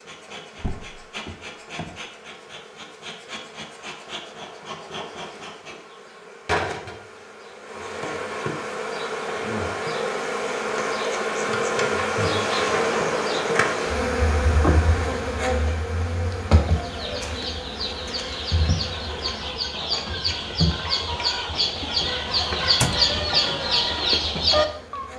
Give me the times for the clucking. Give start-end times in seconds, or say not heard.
16.6-25.1.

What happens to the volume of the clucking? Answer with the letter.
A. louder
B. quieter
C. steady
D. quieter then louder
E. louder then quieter
A.